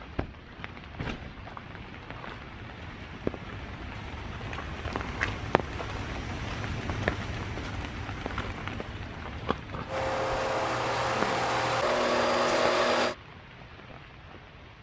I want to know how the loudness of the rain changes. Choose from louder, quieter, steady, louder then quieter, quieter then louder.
louder then quieter.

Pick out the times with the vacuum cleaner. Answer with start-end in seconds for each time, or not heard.
9.8-13.2.